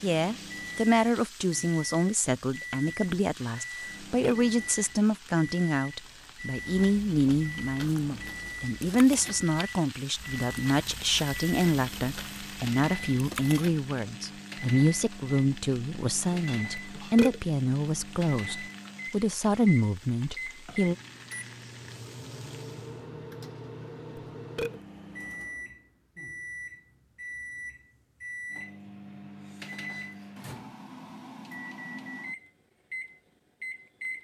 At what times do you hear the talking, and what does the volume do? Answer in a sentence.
You can hear the talking from 0.0 to 20.9 s, at a steady volume.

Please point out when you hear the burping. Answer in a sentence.
The burping can be heard from 3.8 to 4.5 s, from 16.8 to 17.4 s and from 24.1 to 24.8 s.